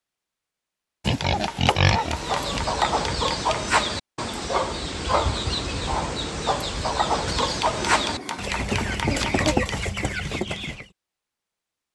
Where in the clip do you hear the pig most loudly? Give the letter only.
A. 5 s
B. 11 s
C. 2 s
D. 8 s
C.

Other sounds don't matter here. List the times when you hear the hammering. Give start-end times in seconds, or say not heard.
1.2-3.5, 7.4-9.8.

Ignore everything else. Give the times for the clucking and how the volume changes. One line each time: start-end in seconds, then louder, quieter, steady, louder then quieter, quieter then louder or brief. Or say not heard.
2.0-10.8 steady.